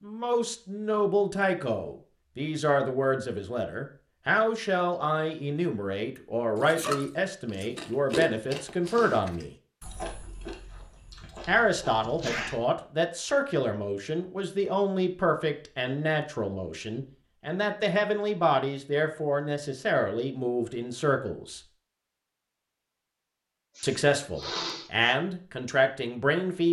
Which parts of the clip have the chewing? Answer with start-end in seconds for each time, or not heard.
6.5-12.6.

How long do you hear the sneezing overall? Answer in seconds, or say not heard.
3 s.